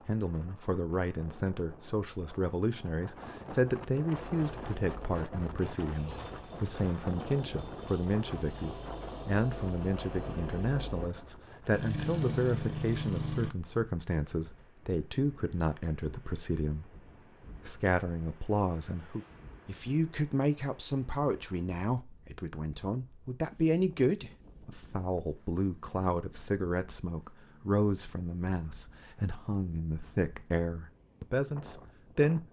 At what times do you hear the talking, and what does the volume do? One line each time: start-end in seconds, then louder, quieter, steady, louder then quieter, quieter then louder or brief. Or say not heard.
0.1-32.4 steady.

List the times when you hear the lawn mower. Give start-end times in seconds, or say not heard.
4.1-13.5.